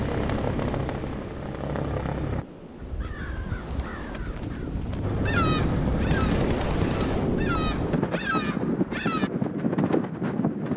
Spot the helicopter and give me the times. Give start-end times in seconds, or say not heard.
0.0-2.5, 5.0-7.3.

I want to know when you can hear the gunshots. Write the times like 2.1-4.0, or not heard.
6.1-7.4.